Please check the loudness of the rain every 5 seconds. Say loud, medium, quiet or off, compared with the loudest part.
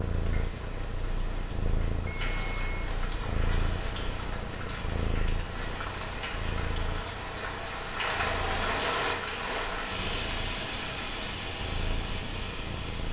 medium, loud, loud.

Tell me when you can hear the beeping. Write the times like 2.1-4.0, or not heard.
2.0-3.0.